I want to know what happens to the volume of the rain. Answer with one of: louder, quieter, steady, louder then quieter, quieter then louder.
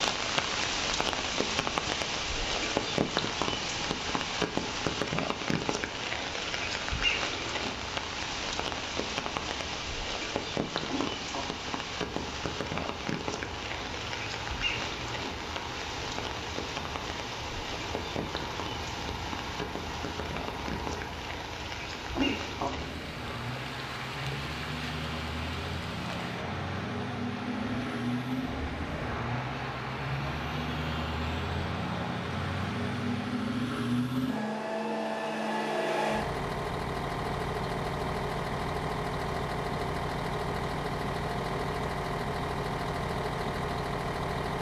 quieter.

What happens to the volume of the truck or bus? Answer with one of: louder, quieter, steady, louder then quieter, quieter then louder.
louder.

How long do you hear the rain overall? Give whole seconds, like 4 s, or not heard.
33 s.